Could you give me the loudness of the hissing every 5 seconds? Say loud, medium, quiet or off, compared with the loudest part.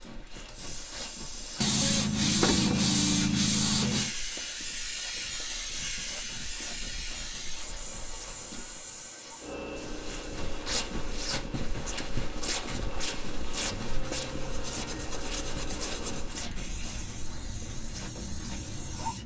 loud, loud, medium, loud.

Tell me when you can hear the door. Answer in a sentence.
The door can be heard from 2.4 to 3.0 s.